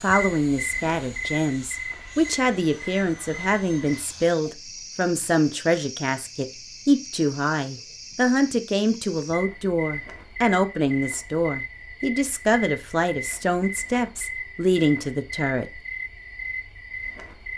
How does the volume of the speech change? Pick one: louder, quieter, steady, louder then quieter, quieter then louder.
steady.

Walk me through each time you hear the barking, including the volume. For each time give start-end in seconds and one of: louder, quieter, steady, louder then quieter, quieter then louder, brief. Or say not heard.
not heard.